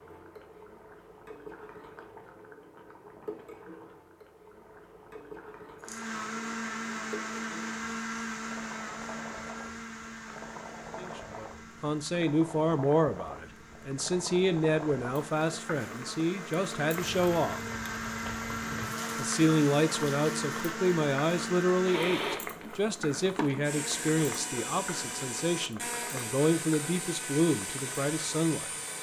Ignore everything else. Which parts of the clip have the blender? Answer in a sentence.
You can hear the blender from 5.8 to 28.9 s.